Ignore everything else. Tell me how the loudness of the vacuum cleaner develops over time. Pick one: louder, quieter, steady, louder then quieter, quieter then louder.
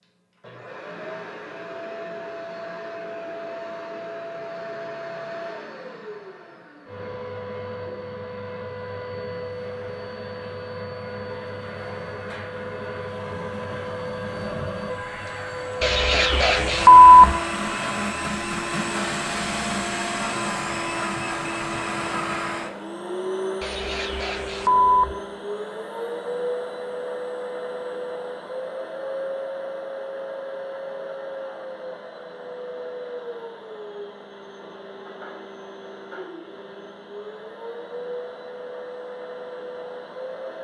louder then quieter.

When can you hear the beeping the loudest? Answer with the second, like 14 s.
17 s.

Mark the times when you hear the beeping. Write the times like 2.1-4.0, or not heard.
15.8-17.4, 23.6-25.1.